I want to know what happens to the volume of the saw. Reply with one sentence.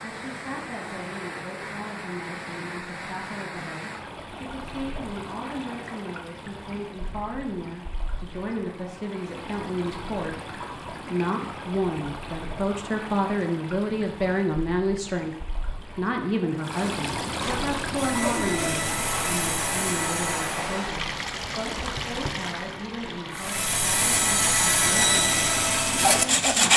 The volume of the saw goes up.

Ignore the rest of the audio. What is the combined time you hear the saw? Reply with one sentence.
The saw can be heard for 7 seconds in total.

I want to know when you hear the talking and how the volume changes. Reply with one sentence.
You can hear the talking from 0.0 to 26.7 s, getting louder then quieter.